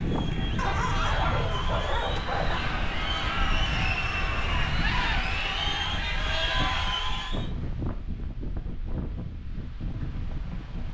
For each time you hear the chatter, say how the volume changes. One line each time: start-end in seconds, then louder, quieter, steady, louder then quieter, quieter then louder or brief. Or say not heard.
0.0-7.5 louder.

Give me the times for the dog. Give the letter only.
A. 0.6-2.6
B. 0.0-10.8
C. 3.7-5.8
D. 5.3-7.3
A.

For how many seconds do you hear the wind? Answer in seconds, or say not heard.
11 s.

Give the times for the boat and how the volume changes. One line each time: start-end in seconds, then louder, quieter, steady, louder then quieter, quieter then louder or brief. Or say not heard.
not heard.